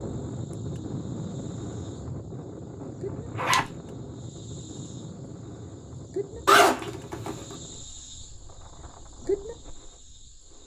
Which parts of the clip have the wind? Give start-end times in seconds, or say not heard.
0.0-10.6.